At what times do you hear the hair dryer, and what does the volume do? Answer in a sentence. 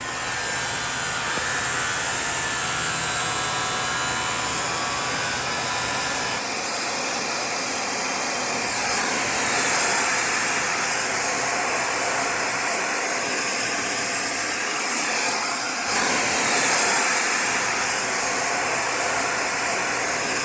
The hair dryer can be heard from 0.0 to 20.4 s, getting louder.